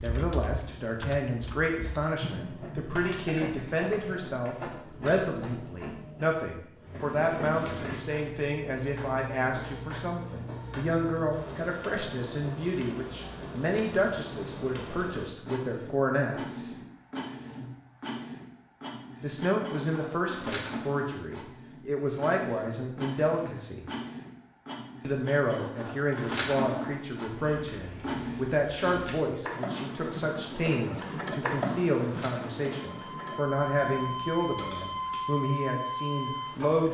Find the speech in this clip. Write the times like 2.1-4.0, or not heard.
0.0-16.8, 19.2-23.9, 25.0-36.8.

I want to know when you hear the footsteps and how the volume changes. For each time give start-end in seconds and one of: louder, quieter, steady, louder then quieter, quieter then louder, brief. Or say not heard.
not heard.